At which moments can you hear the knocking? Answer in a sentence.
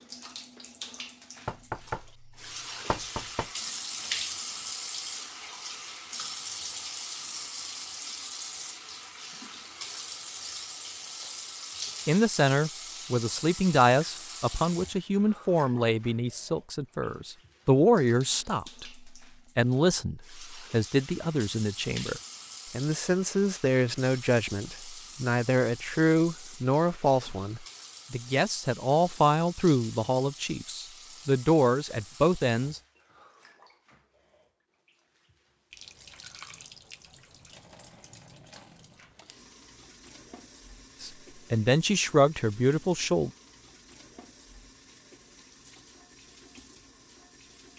You can hear the knocking from 1.4 to 3.5 s.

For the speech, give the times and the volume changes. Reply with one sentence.
You can hear the speech from 12.1 to 32.8 s, at a steady volume; and briefly from 41.0 to 43.3 s.